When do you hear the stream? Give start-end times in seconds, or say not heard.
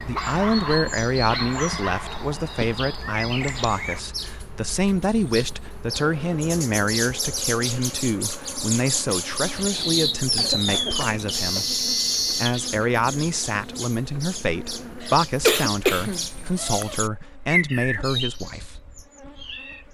not heard.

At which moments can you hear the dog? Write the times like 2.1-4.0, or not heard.
0.1-2.4.